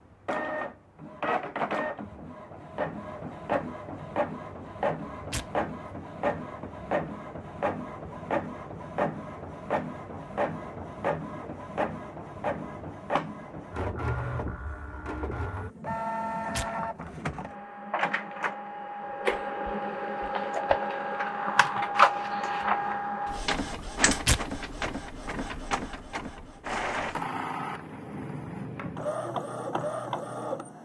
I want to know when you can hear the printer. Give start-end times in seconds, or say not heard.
0.2-30.7.